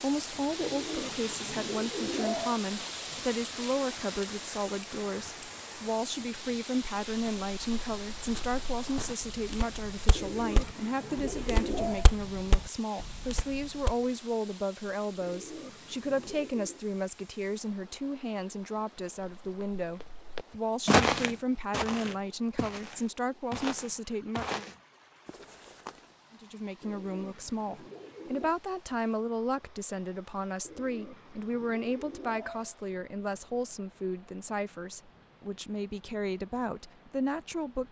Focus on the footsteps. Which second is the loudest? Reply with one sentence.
The loudest moment of the footsteps is at 21 seconds.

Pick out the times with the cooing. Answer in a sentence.
You can hear the cooing from 0.6 to 2.6 s, from 10.2 to 12.1 s, from 15.2 to 16.8 s, from 26.8 to 28.6 s and from 30.6 to 32.8 s.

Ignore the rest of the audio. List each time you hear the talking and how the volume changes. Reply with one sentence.
You can hear the talking from 0.0 to 24.6 s, at a steady volume; and from 26.3 to 37.8 s, at a steady volume.